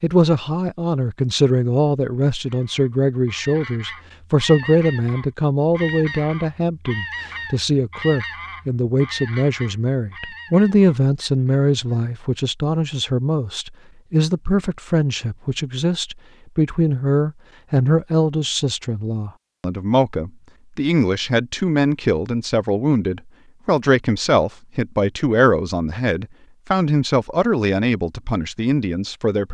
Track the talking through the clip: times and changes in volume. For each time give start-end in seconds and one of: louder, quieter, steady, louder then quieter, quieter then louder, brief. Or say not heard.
0.0-29.4 steady.